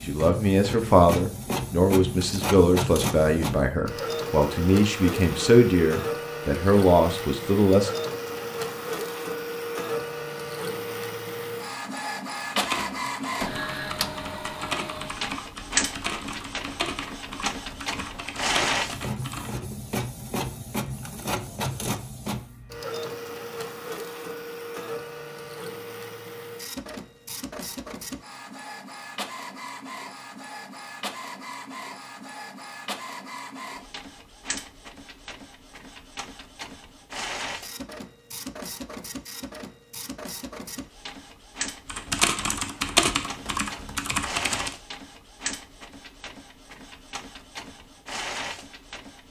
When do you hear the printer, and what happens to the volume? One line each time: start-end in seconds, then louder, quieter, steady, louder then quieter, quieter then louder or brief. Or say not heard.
0.0-49.2 quieter.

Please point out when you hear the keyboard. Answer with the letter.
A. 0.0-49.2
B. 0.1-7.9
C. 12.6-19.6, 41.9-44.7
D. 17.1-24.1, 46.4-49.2
C.